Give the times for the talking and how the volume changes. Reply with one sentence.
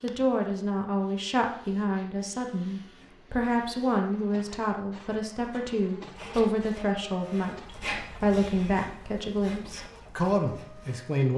You can hear the talking from 0.0 to 11.3 s, at a steady volume.